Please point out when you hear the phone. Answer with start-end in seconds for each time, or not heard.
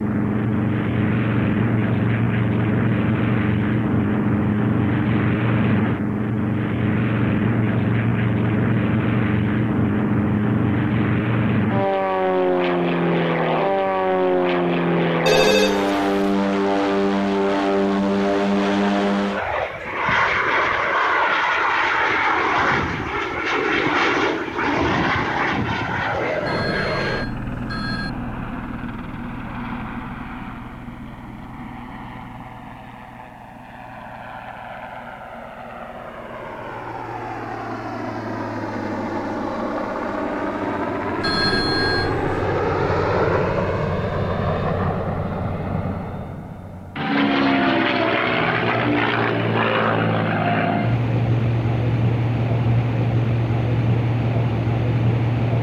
15.2-16.1, 26.4-28.1, 41.2-42.4.